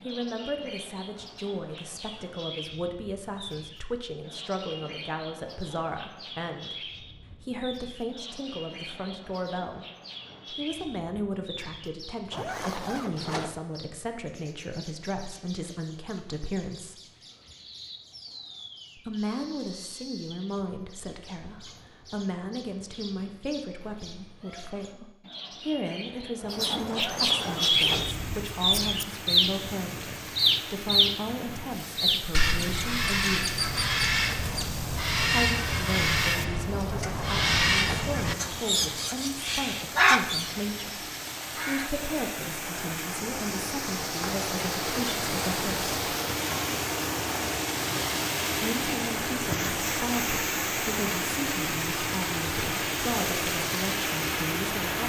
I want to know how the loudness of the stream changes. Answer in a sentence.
The loudness of the stream goes up.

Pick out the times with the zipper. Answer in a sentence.
The zipper can be heard from 12.3 to 13.6 s, from 26.9 to 28.1 s and from 36.9 to 38.1 s.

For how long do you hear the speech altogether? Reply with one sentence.
The speech can be heard for 48 seconds in total.